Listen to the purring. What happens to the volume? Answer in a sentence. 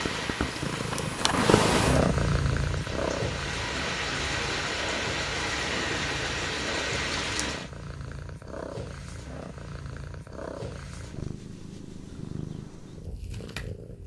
The volume of the purring goes down.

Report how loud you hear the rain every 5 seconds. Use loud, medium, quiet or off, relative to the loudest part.
loud, loud, off.